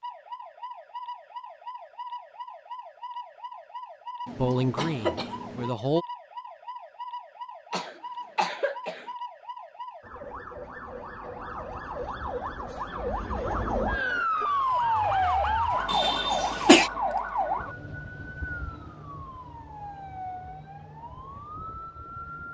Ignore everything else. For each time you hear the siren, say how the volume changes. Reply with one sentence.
The siren can be heard from 0.0 to 22.4 s, getting louder then quieter.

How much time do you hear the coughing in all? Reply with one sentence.
You can hear the coughing for 4 seconds altogether.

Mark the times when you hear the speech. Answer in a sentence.
The speech can be heard from 4.3 to 6.0 s.